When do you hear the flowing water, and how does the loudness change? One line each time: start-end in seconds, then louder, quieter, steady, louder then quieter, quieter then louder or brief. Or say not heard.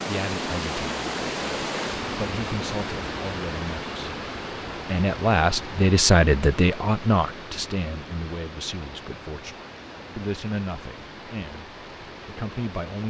0.0-13.0 quieter.